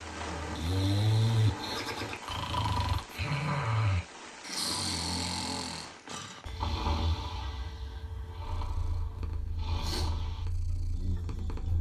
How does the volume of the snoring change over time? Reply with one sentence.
The volume of the snoring goes down.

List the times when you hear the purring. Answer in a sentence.
You can hear the purring from 8.4 to 11.7 s.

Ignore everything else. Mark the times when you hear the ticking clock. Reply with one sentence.
The ticking clock can't be heard in this clip.